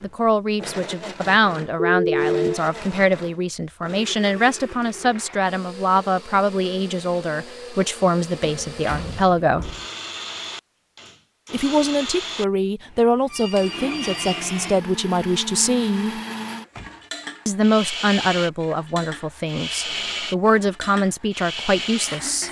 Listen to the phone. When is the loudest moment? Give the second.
2 s.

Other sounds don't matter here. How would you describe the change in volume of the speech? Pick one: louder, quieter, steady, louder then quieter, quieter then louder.
steady.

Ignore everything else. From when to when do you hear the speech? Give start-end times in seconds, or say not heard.
0.0-9.7, 11.5-16.2, 17.4-22.4.